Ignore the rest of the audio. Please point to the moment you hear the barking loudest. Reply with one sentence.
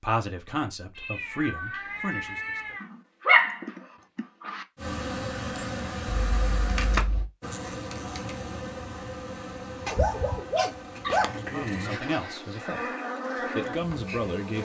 The volume of the barking peaks at 3 seconds.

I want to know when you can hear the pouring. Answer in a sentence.
The pouring can't be heard in this clip.